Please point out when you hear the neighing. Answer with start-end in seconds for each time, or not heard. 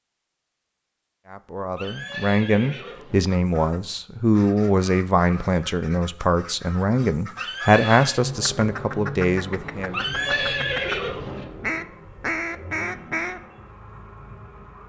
1.8-3.3, 7.3-8.2, 9.9-11.4.